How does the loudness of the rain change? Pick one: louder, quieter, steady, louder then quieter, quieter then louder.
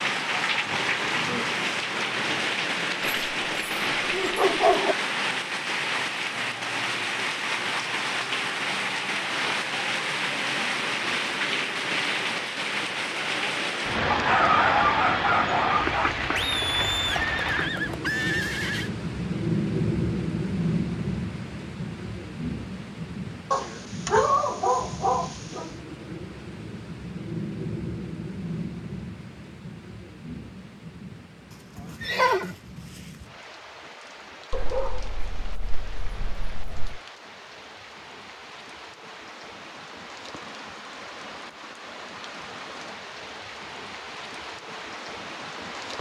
quieter.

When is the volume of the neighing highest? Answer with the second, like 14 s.
32 s.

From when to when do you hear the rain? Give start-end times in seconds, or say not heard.
0.0-45.9.